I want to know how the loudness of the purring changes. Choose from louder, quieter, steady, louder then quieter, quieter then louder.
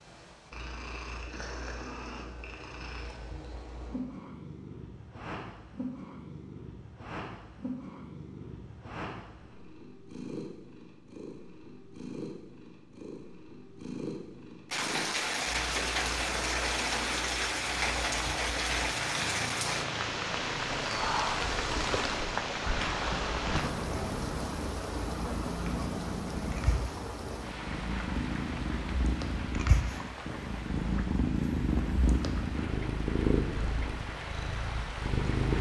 louder.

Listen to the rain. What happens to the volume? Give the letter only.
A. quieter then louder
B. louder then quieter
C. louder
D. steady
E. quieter
E.